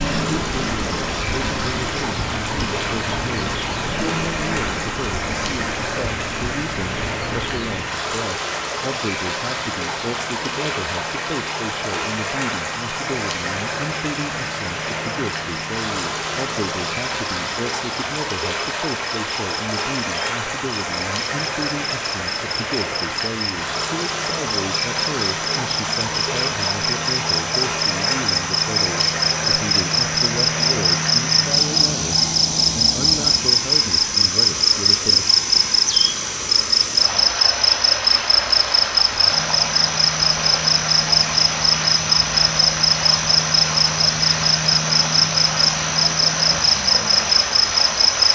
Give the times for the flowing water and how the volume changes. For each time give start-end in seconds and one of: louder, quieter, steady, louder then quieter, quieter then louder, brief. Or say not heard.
0.0-48.3 steady.